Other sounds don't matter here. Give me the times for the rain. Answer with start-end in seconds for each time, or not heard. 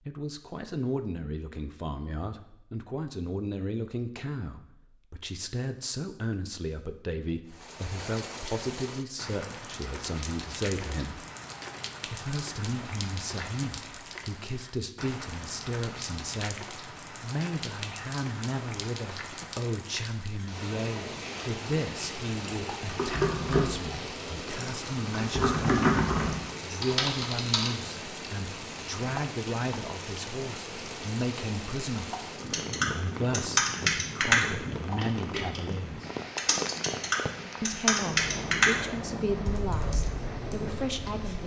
7.5-41.4.